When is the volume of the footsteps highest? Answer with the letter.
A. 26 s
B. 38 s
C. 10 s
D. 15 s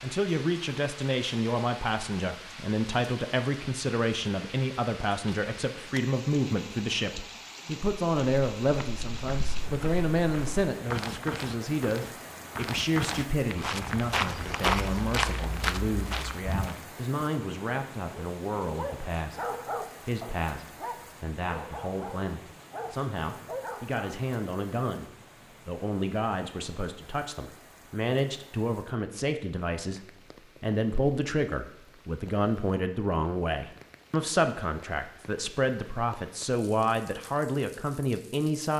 D.